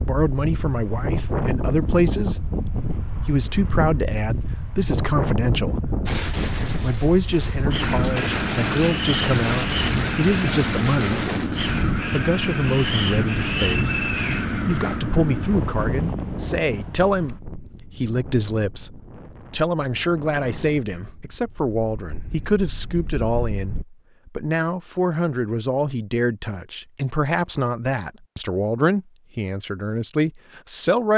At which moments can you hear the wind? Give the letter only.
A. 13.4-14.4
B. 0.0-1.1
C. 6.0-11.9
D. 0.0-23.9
D.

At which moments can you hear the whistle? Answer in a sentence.
The whistle can be heard from 13.4 to 14.4 s.